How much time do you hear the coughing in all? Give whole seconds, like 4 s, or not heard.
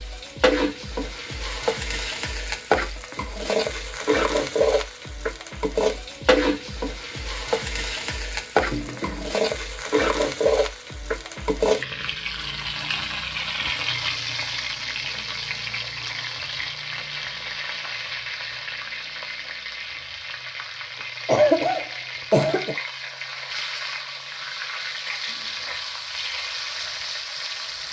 2 s.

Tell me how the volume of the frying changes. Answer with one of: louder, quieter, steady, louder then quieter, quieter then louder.
quieter.